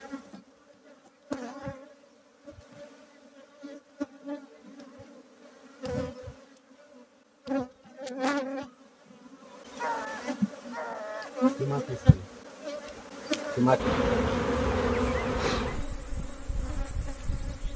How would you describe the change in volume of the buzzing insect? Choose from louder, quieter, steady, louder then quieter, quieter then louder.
louder.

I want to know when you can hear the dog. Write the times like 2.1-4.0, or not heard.
9.8-11.3.